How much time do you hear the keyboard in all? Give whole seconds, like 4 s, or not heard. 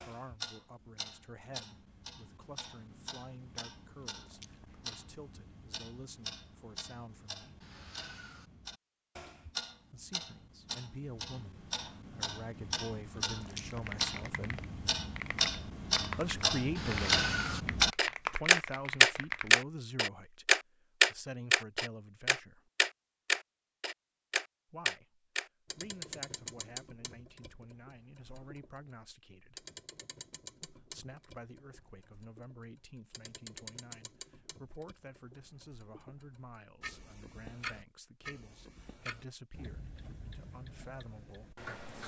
6 s.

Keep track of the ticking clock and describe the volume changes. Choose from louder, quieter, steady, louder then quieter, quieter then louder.
louder then quieter.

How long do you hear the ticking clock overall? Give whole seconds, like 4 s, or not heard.
42 s.